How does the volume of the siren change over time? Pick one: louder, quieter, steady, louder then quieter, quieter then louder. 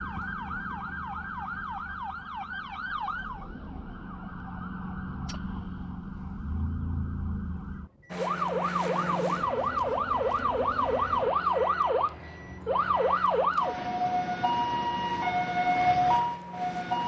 louder.